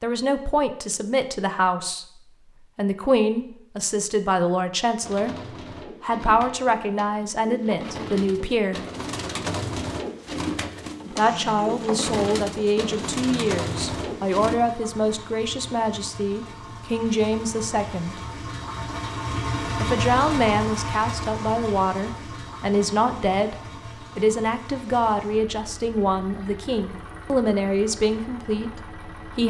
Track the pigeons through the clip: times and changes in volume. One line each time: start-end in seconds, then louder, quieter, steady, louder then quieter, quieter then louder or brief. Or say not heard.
5.0-14.6 louder.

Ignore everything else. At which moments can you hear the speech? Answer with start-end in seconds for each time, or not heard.
0.0-5.3, 6.0-8.8, 11.1-18.2, 19.8-23.6, 24.1-29.4.